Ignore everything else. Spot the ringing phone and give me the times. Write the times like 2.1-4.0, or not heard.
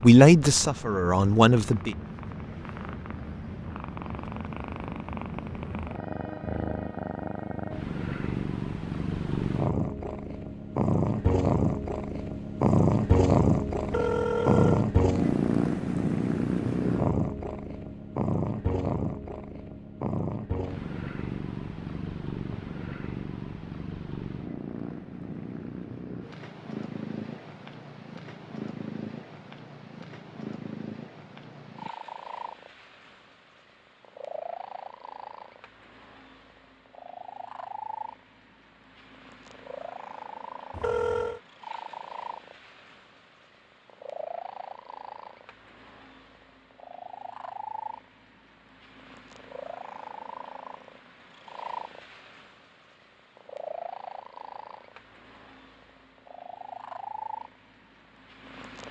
13.8-14.8, 40.7-41.4.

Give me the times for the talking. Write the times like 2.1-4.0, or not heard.
0.0-1.9.